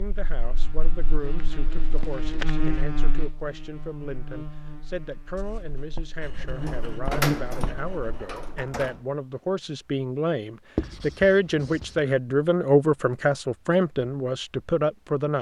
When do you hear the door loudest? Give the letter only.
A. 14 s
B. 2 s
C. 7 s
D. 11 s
C.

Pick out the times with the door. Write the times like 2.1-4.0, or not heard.
6.5-9.1.